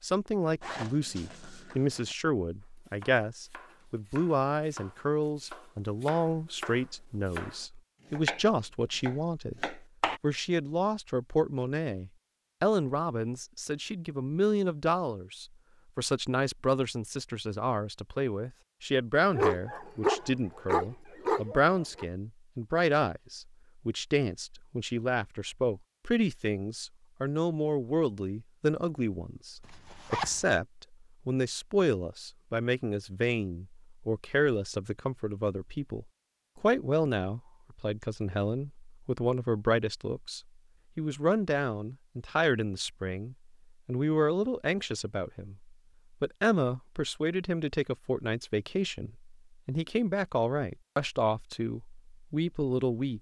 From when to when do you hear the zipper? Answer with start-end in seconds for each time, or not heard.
0.6-2.1, 29.6-30.4.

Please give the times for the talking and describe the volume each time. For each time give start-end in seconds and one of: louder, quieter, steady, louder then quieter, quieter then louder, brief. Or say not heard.
0.0-53.1 steady.